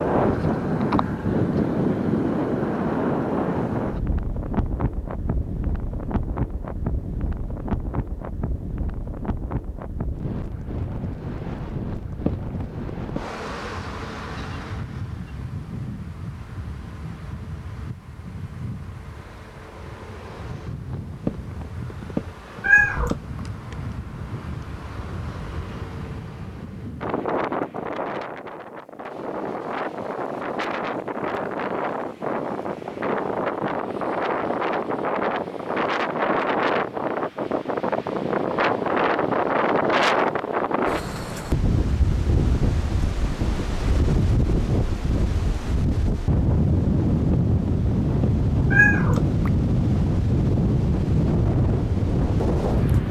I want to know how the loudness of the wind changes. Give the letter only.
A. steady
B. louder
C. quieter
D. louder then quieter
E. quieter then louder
E.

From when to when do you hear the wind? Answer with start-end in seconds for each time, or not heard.
0.0-53.0.